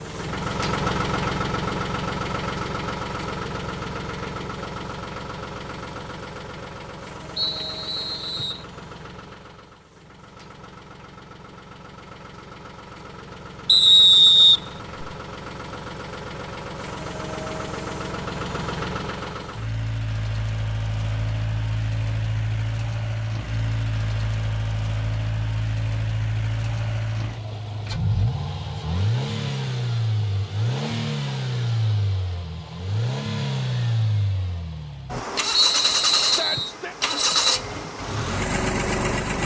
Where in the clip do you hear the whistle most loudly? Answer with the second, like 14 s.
14 s.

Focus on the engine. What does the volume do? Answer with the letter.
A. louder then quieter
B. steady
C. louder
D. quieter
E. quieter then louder
E.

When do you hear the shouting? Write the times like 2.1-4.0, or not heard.
36.2-37.0.